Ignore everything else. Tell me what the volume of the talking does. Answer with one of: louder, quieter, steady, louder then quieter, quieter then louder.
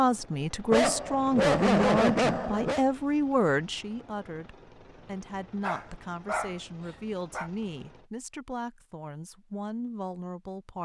quieter.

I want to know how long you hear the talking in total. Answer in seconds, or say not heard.
11 s.